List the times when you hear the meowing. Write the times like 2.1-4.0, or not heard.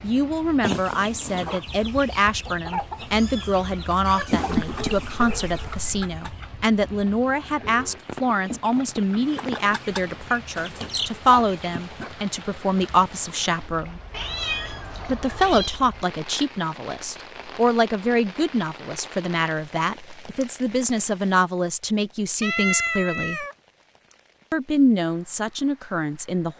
3.1-4.8, 14.1-15.8, 22.4-23.6.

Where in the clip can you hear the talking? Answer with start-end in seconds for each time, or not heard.
0.0-14.0, 15.1-23.4, 24.5-26.5.